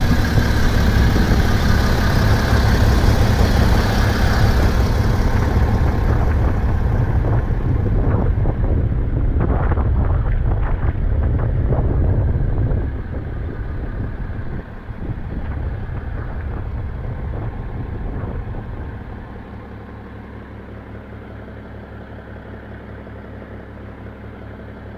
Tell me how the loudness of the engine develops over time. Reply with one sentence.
The loudness of the engine goes down.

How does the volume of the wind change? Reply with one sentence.
The volume of the wind goes down.